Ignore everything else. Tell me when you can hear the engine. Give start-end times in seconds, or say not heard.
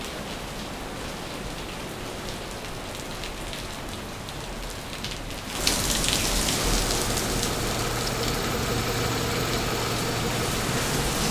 6.5-11.2.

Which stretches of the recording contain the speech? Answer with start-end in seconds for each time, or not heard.
not heard.